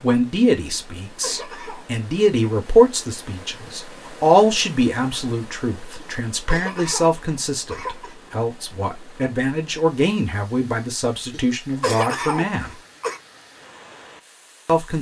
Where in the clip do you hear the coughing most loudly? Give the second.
12 s.